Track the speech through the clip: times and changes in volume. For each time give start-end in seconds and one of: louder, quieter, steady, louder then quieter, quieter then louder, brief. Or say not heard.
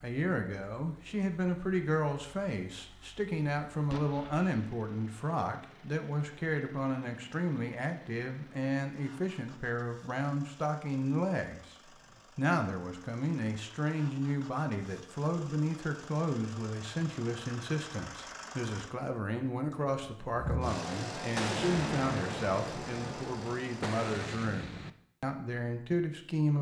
0.0-11.8 steady
12.3-26.5 steady.